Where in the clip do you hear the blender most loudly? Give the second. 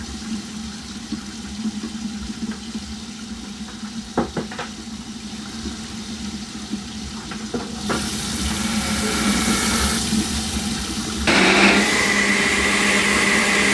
12 s.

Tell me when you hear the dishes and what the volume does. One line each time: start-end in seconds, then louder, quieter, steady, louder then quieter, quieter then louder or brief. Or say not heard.
not heard.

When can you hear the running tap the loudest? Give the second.
10 s.